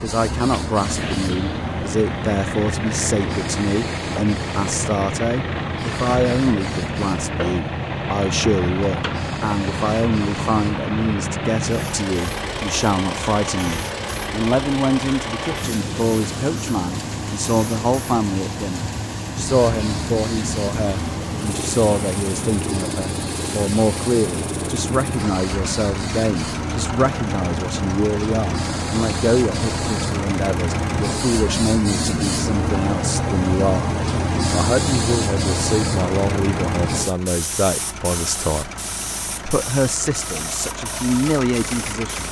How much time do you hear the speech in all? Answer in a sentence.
The speech can be heard for 41 seconds in total.